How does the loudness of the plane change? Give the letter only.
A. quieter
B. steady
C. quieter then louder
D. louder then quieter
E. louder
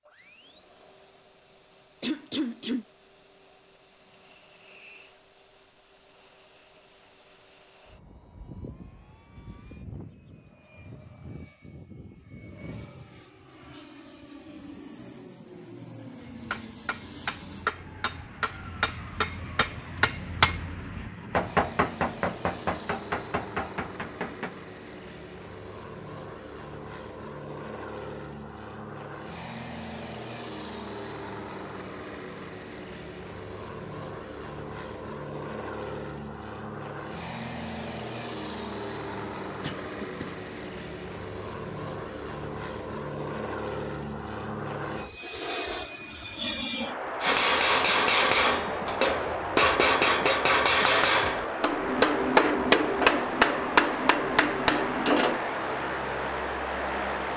E.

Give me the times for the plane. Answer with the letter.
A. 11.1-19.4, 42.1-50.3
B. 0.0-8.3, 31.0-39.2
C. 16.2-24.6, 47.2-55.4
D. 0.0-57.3
D.